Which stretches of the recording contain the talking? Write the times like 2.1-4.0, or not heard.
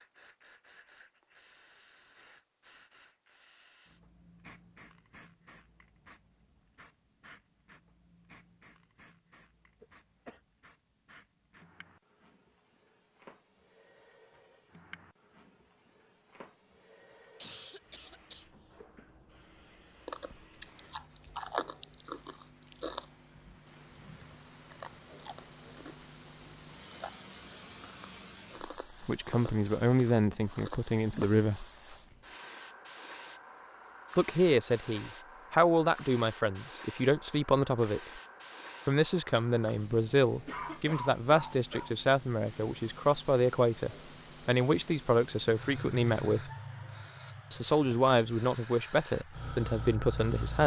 29.1-31.6, 34.1-38.0, 38.9-46.4, 47.5-50.6.